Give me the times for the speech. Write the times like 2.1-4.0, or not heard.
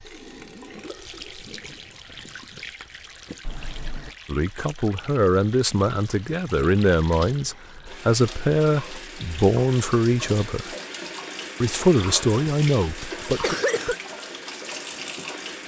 4.2-10.8, 11.6-13.6.